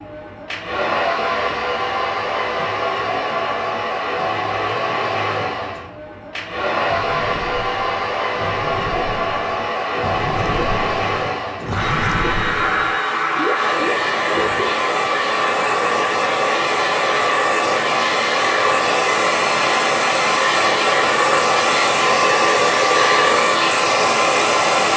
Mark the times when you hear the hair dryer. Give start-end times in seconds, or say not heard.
0.0-24.9.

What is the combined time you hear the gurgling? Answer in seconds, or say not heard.
8 s.